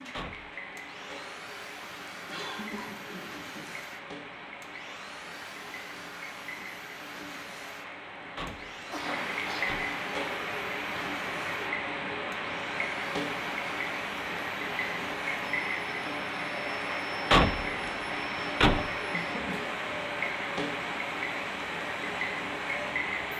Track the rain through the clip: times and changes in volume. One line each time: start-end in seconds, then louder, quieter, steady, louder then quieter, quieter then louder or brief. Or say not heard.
0.0-23.3 louder.